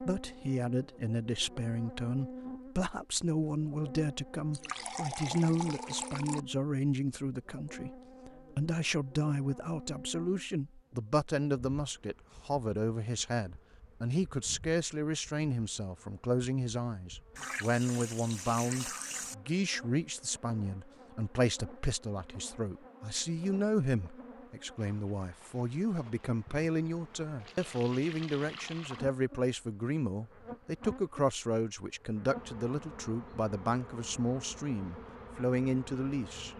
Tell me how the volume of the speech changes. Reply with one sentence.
The volume of the speech stays about the same.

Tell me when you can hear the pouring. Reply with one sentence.
You can hear the pouring from 4.5 to 6.4 s, from 17.4 to 19.4 s and from 27.4 to 29.1 s.